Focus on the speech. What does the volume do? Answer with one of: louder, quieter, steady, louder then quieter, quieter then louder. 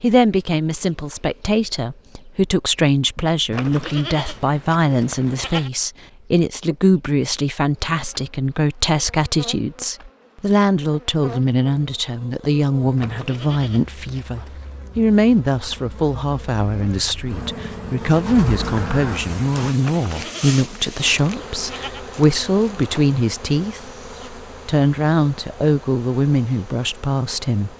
steady.